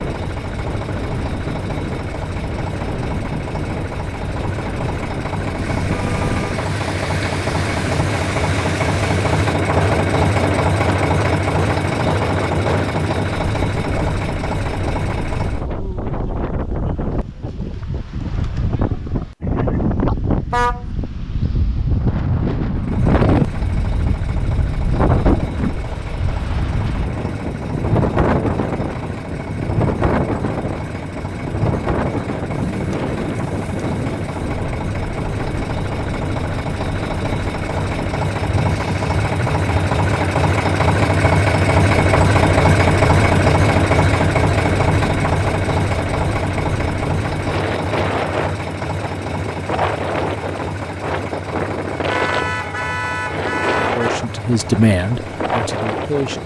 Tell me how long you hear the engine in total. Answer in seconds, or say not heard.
49 s.